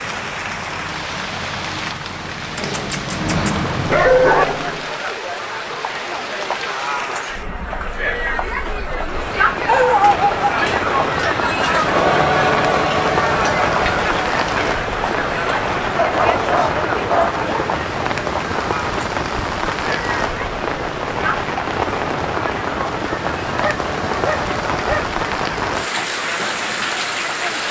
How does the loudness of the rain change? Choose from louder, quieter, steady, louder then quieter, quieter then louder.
louder.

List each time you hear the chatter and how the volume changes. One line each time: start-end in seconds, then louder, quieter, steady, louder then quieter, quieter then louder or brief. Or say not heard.
4.3-27.6 louder then quieter.